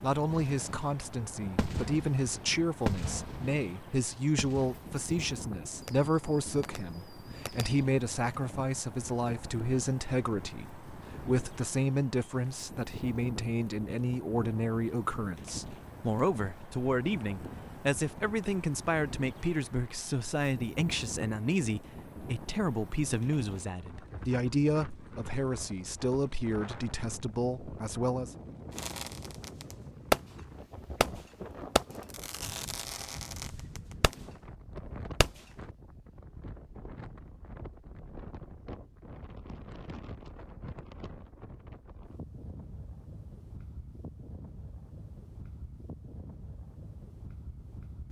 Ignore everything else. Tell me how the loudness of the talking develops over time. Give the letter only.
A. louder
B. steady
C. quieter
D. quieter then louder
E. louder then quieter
B.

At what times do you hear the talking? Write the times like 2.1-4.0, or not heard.
0.0-28.3.